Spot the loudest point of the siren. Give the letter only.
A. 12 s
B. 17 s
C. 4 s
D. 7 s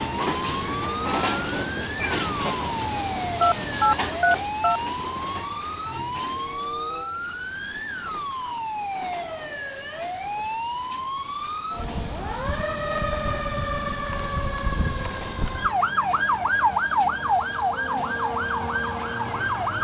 B.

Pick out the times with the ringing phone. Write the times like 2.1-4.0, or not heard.
3.4-4.8.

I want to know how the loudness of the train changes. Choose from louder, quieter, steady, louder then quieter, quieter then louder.
quieter.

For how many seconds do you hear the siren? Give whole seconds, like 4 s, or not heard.
20 s.